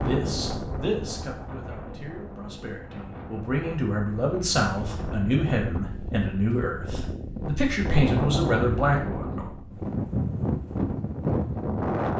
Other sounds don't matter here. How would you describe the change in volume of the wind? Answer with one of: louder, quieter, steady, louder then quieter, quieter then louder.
louder.